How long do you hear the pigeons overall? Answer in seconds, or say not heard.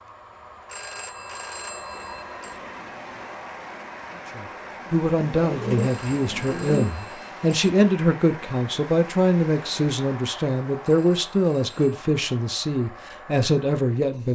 2 s.